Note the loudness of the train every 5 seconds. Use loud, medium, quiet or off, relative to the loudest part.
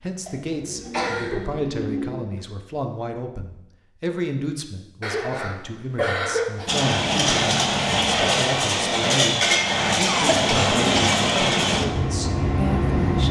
off, loud, loud.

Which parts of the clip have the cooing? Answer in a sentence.
The cooing can be heard from 0.6 to 2.5 s.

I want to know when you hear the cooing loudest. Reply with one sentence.
The volume of the cooing peaks at 2 seconds.